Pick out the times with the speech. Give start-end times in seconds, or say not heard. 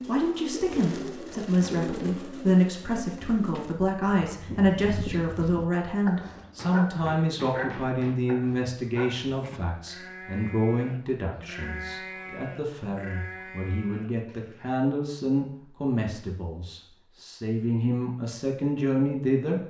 0.1-19.6.